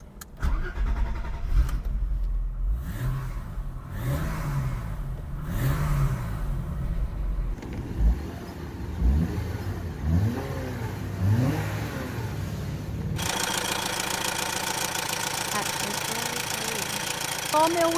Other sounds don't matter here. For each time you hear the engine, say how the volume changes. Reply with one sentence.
The engine can be heard from 0.0 to 17.9 s, getting louder.